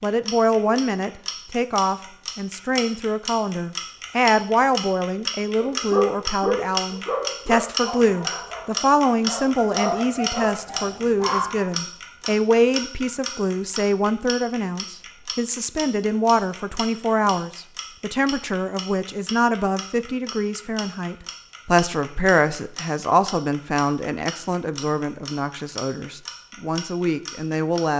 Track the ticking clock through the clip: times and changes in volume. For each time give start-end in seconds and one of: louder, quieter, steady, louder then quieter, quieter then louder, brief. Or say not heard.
0.0-27.8 quieter.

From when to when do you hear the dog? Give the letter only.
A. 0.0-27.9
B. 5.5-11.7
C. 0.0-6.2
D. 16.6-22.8
B.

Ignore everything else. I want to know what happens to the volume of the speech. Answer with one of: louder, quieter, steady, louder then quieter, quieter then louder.
steady.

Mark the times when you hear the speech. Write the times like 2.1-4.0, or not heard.
0.0-27.9.